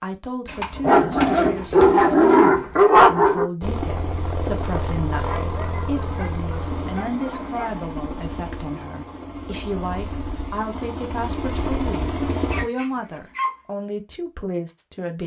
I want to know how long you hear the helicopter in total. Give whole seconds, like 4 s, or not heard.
9 s.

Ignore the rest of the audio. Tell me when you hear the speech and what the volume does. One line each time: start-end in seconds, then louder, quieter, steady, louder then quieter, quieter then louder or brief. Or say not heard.
0.0-15.2 steady.